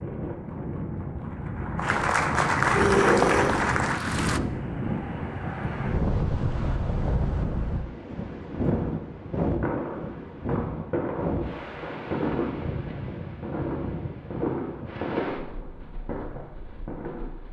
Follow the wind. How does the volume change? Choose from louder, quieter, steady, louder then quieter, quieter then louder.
quieter.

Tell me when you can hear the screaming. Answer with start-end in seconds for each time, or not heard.
2.7-3.5.